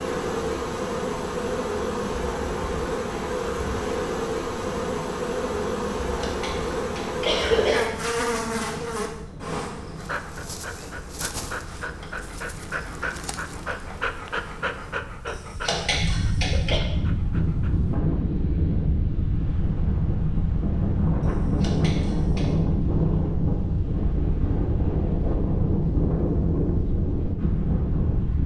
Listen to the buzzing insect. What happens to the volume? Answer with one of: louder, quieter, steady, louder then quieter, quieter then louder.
quieter.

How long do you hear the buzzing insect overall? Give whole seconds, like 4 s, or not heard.
15 s.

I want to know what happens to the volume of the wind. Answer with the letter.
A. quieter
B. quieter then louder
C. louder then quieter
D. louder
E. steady
D.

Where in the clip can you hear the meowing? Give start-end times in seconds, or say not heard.
not heard.